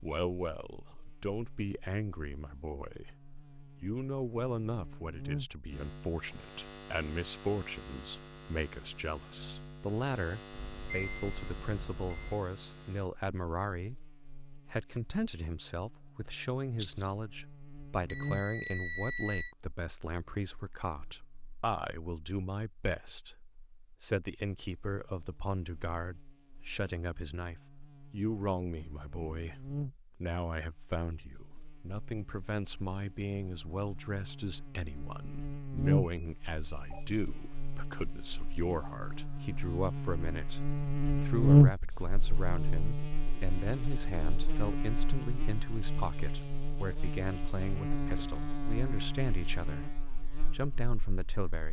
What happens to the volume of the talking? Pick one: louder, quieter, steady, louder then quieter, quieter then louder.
steady.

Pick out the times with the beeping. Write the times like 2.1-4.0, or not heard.
10.5-12.4, 18.1-19.6, 36.0-37.2.